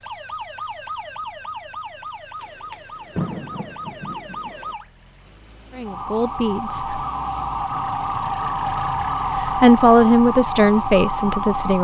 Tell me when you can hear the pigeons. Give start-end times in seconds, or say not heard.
not heard.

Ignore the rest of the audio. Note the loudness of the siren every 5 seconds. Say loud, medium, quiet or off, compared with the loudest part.
medium, loud, loud.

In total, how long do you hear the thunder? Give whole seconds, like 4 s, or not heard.
2 s.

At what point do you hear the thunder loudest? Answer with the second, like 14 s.
3 s.